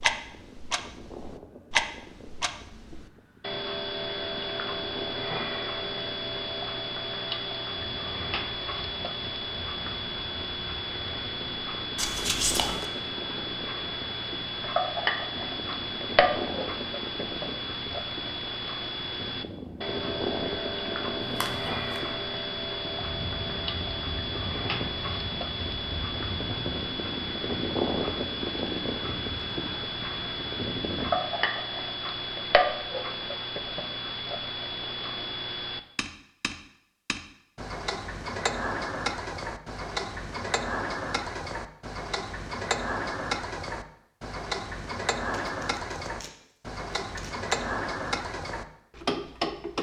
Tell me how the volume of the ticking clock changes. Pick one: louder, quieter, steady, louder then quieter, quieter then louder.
steady.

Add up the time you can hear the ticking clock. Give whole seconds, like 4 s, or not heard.
50 s.